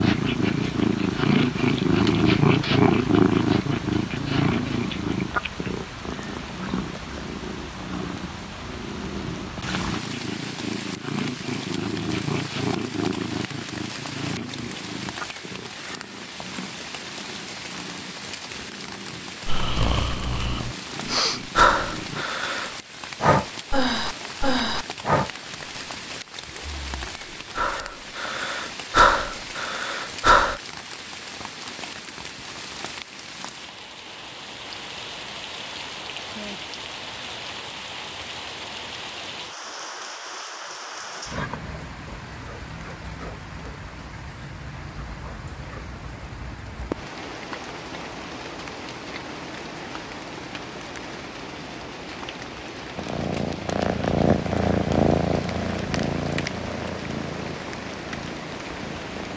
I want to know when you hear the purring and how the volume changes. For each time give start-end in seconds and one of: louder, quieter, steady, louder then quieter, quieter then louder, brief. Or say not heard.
0.0-22.2 quieter
53.0-59.3 quieter.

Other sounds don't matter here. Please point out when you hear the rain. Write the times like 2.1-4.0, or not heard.
0.0-59.3.